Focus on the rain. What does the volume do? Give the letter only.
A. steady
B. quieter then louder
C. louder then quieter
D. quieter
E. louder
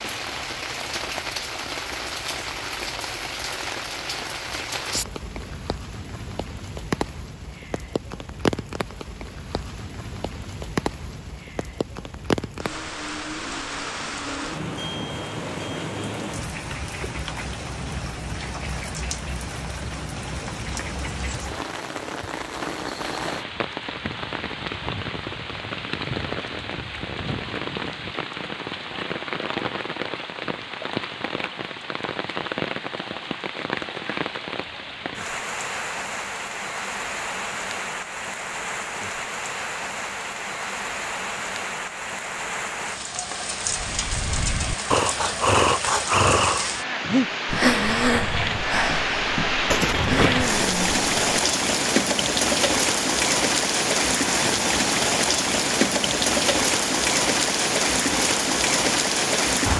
E.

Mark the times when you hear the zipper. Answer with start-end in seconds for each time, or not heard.
49.7-50.5.